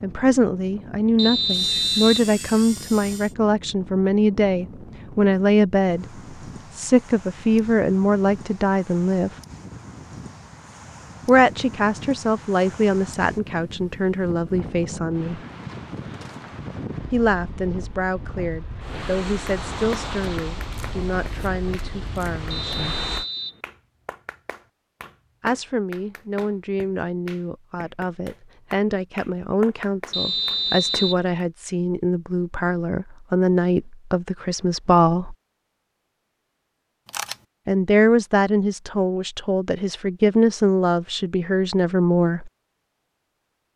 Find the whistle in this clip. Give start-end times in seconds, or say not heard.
1.1-2.3, 22.5-23.6, 30.1-31.2.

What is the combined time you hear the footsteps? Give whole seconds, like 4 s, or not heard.
not heard.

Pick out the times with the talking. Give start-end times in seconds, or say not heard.
0.0-6.0, 6.7-9.3, 11.2-15.4, 17.1-23.0, 25.4-35.4, 37.6-42.5.